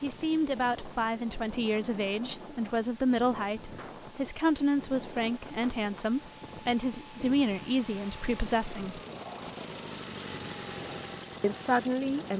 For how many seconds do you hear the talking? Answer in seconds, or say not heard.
10 s.